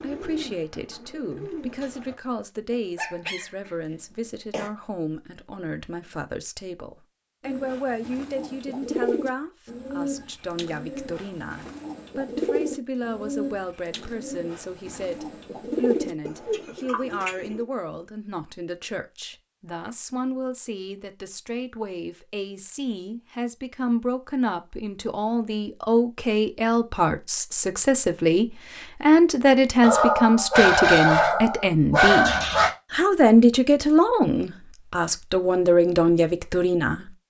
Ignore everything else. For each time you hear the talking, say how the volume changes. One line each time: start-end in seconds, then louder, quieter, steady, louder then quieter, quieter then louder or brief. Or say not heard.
0.0-37.1 louder.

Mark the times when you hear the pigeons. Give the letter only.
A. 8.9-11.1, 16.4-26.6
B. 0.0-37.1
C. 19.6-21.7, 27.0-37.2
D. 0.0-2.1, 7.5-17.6
D.